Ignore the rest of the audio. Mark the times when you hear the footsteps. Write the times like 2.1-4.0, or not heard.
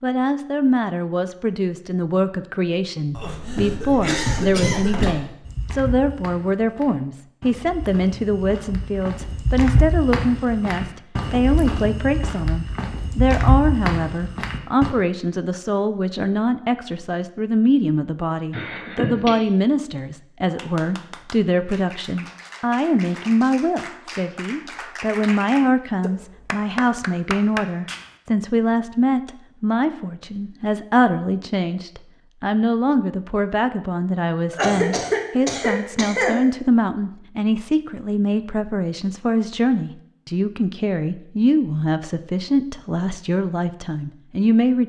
5.5-14.9.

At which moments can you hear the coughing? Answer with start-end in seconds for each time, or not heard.
3.1-5.2, 18.5-19.3, 34.5-36.4.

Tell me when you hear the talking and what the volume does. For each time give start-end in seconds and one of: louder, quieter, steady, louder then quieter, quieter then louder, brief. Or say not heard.
0.0-44.8 steady.